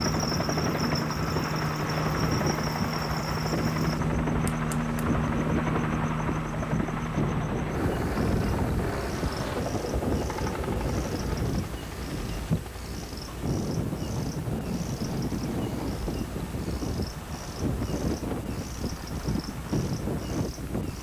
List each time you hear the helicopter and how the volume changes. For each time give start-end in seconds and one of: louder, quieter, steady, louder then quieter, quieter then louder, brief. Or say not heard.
0.0-20.9 quieter.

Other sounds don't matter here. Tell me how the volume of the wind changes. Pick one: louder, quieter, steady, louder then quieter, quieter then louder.
steady.